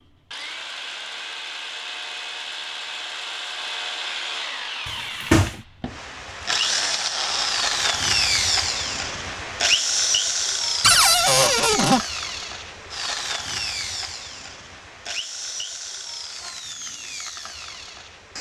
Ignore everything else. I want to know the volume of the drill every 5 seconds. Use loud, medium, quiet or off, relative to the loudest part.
medium, loud, loud, medium.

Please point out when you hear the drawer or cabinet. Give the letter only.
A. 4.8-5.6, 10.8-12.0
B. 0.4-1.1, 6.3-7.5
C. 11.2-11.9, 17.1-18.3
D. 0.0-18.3
A.